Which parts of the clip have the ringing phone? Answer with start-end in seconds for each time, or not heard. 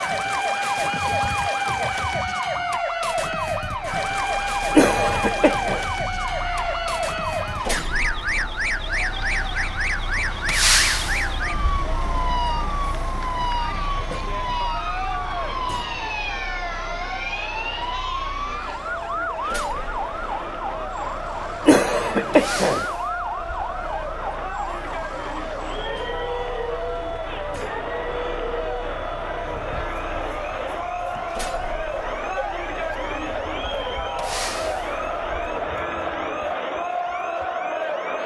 not heard.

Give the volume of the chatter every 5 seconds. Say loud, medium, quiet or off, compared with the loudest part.
quiet, medium, medium, medium, medium, loud, loud, loud.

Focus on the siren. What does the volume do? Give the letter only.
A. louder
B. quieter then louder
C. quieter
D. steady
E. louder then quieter
C.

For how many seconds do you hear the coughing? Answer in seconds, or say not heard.
2 s.